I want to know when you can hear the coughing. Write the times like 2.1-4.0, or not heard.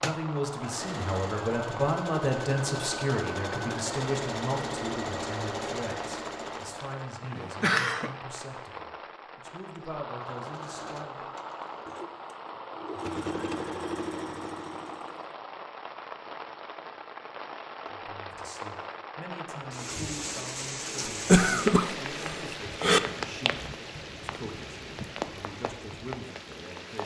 7.3-8.1, 21.2-23.0.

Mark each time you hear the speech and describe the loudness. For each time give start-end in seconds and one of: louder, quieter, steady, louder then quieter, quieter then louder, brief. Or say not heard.
0.0-11.3 quieter
17.9-27.0 steady.